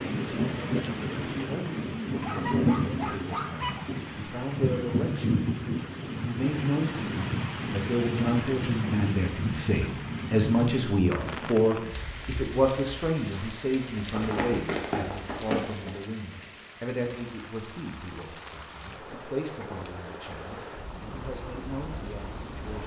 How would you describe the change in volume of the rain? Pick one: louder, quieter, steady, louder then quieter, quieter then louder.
quieter.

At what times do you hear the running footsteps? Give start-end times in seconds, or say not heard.
13.9-15.9.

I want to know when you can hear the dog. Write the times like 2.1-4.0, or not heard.
2.2-3.9.